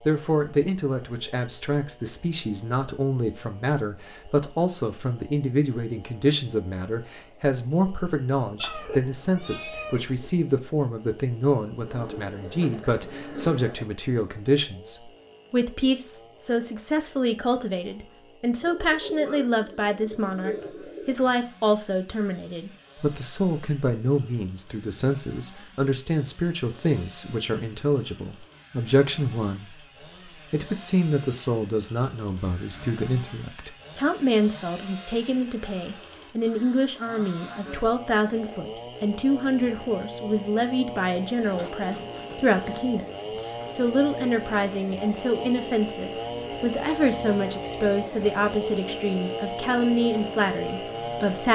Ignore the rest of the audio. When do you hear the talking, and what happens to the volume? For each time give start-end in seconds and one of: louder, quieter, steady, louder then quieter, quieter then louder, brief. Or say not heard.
0.0-51.4 steady.